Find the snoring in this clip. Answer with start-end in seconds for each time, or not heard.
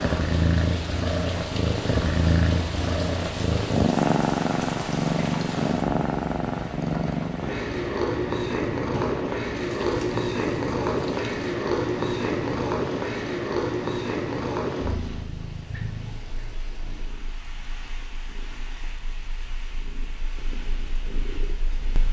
not heard.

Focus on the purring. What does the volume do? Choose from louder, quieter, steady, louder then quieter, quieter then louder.
quieter.